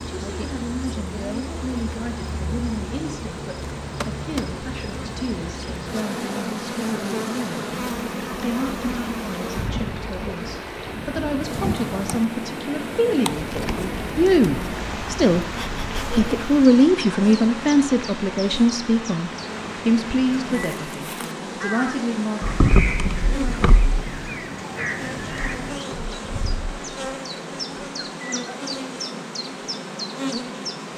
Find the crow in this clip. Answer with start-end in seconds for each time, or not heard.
20.4-25.9.